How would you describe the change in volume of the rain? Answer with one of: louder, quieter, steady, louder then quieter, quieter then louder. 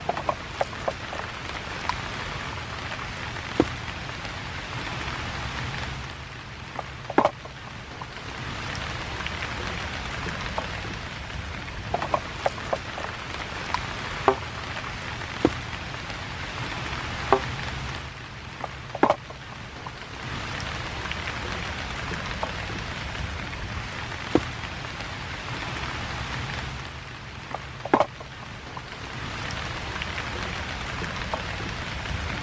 steady.